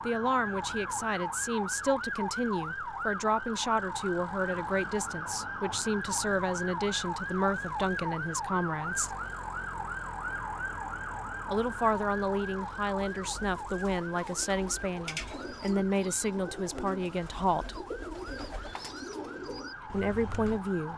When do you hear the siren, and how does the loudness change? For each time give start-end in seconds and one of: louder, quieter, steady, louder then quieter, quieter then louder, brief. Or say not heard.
0.0-20.9 quieter.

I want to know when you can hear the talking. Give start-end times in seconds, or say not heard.
0.0-9.2, 11.4-17.8, 19.9-20.9.